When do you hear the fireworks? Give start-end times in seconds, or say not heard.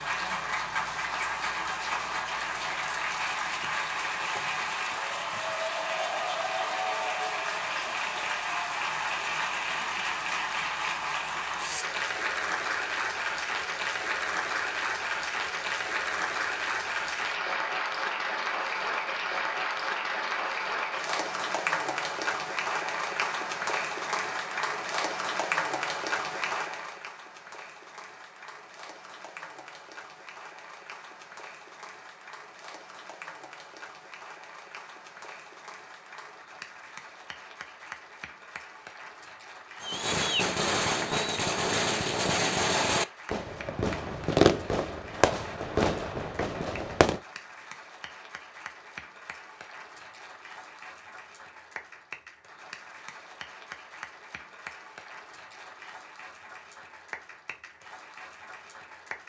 39.8-47.2.